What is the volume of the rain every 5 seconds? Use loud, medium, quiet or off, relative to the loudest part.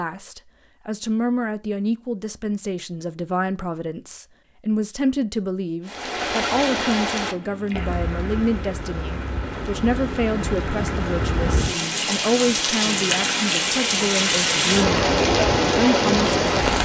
off, medium, loud, loud.